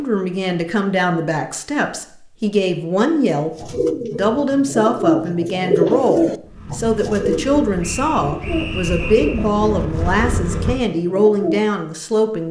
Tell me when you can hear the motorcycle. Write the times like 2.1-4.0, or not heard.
6.4-10.8.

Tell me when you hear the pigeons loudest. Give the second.
6 s.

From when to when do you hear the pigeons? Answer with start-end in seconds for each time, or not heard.
3.5-11.7.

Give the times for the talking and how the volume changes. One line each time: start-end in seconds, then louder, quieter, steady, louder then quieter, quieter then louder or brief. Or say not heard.
0.0-12.4 steady.